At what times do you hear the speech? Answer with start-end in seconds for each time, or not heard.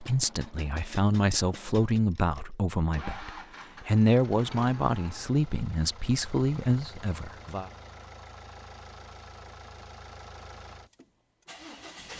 0.0-7.7.